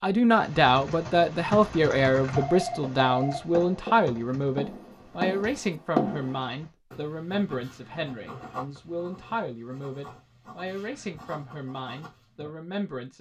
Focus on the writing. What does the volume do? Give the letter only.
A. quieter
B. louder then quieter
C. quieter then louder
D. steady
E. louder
B.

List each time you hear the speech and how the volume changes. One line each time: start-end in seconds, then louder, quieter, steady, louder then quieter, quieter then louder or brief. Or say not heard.
0.0-13.1 quieter.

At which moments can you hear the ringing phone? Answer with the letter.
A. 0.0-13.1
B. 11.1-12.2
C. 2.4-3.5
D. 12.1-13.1
C.